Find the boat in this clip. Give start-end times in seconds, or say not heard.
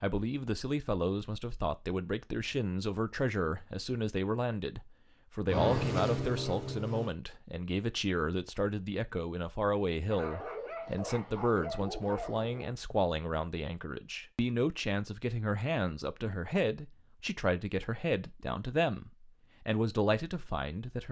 5.5-7.2.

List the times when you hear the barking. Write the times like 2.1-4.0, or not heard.
10.1-12.8.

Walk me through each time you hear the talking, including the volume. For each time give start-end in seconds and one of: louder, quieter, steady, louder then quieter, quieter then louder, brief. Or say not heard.
0.0-21.0 steady.